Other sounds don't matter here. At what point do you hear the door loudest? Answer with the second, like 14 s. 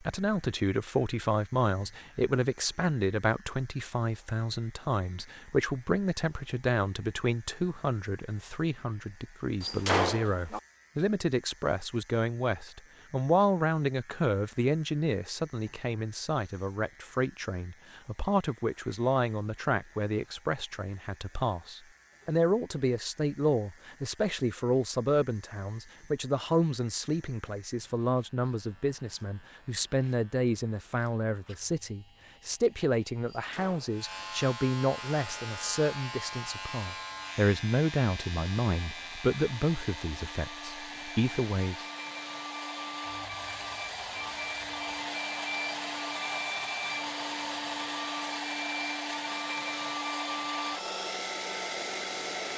10 s.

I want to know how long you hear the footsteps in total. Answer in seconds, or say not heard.
not heard.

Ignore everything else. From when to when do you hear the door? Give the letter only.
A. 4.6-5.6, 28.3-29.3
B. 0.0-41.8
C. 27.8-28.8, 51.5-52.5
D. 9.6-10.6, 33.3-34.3
D.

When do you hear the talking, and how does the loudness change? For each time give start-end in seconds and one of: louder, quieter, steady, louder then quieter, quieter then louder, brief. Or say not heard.
0.0-41.8 steady.